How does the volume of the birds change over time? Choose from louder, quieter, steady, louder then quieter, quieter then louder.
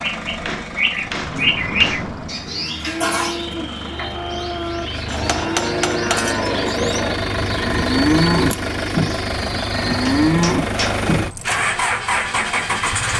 quieter.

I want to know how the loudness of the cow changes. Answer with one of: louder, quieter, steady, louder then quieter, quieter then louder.
louder.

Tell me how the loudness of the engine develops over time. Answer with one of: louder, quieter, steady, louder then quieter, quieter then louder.
louder.